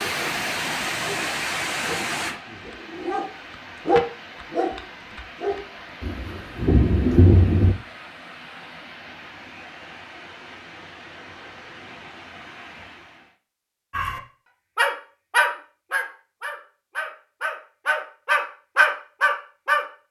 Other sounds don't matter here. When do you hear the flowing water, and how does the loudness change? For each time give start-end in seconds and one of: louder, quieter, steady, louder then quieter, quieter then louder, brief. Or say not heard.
0.0-13.3 quieter.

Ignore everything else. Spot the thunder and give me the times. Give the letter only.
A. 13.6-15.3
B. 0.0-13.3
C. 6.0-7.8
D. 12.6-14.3
C.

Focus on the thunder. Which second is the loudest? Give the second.
7 s.